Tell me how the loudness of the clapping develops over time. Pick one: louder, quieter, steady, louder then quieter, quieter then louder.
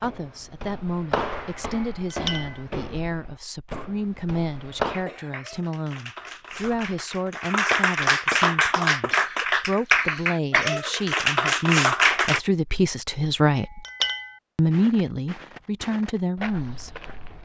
louder.